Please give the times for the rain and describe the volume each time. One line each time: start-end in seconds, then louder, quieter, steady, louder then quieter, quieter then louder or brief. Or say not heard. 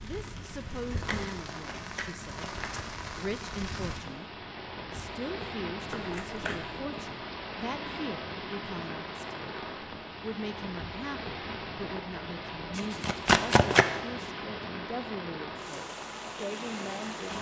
0.0-17.3 steady.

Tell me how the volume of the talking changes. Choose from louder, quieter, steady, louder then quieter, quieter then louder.
steady.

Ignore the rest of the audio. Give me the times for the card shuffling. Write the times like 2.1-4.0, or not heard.
0.9-2.9, 5.8-6.7, 12.8-13.8.